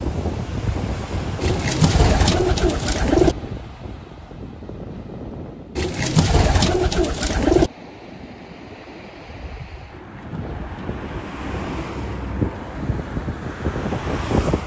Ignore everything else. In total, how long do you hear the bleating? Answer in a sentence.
The bleating can't be heard in this clip.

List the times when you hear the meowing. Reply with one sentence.
The meowing can't be heard in this clip.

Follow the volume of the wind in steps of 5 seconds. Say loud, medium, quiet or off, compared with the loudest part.
loud, medium, loud.